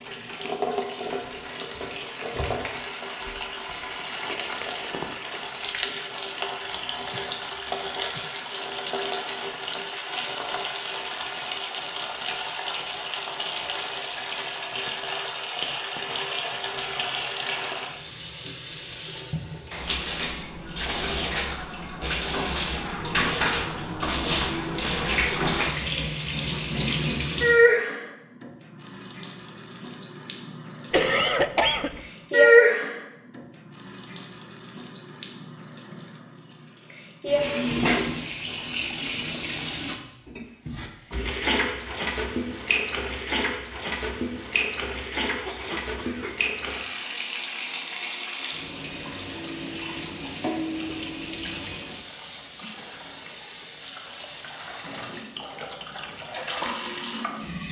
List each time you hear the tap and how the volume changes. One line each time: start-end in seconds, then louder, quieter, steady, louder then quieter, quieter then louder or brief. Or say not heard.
0.0-57.6 louder then quieter.